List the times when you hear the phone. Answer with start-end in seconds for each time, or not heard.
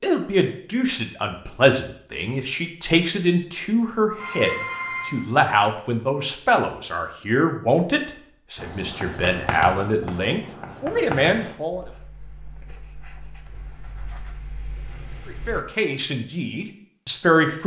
4.2-5.5.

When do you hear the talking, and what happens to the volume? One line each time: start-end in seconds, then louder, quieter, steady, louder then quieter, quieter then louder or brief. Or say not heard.
0.0-11.8 steady
15.2-17.6 brief.